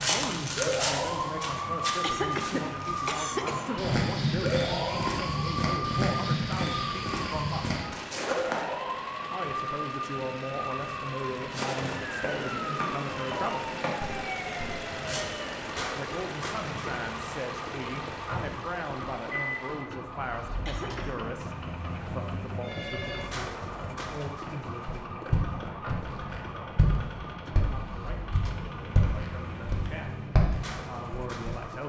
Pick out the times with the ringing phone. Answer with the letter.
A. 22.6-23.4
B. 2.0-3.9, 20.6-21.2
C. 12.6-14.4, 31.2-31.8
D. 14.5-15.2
A.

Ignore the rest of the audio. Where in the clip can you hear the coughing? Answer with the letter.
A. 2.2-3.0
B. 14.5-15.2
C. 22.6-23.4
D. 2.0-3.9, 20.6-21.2
D.